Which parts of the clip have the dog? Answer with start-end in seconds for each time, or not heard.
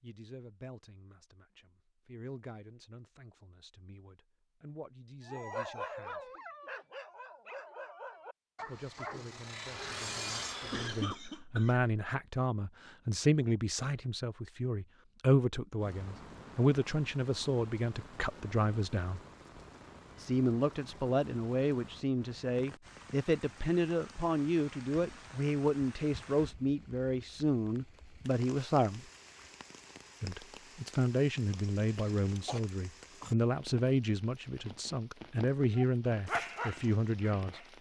5.2-11.2, 35.8-37.7.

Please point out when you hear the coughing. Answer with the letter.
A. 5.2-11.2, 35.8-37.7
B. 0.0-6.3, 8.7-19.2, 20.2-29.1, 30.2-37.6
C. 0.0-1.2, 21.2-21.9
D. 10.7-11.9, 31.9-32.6
D.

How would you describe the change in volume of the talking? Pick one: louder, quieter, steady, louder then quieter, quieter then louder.
louder.